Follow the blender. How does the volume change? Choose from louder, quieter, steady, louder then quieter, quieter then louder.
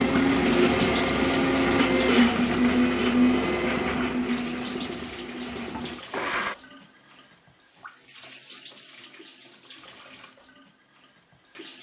quieter.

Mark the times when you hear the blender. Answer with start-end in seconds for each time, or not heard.
0.0-6.5.